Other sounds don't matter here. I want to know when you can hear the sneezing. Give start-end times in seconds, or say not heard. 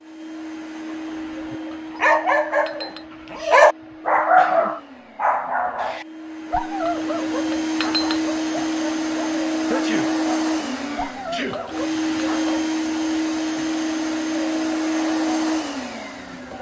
3.8-4.8, 9.6-11.7.